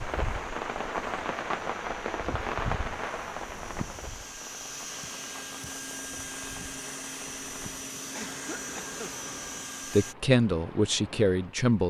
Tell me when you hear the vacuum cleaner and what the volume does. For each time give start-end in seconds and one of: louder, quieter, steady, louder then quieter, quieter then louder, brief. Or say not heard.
0.0-10.2 louder.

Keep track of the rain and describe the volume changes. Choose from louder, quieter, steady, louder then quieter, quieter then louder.
quieter.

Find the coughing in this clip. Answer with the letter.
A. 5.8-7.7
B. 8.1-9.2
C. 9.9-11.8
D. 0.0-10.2
B.